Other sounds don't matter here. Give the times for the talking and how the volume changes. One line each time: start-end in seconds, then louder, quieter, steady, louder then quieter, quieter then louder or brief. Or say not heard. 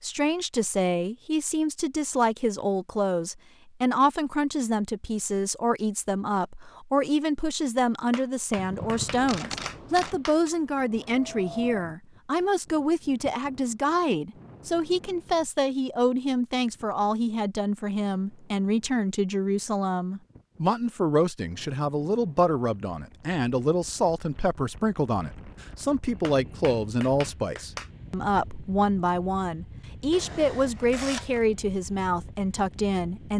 0.0-33.3 steady.